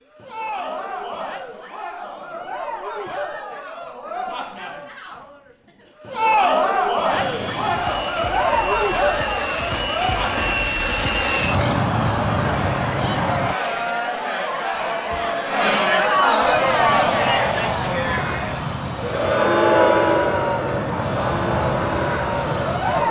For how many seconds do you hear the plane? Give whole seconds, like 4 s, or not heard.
13 s.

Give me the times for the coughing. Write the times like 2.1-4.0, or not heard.
not heard.